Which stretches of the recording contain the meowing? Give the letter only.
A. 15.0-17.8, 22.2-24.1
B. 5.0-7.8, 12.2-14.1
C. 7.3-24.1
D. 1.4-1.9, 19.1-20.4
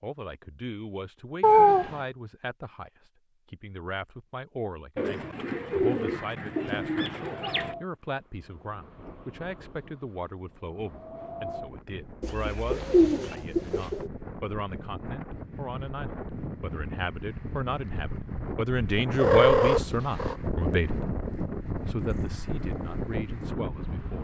D.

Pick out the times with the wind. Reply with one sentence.
The wind can be heard from 7.3 to 24.1 s.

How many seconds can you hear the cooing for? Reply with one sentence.
The cooing can be heard for 5 seconds in total.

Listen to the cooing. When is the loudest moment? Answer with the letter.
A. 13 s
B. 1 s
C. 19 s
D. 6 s
A.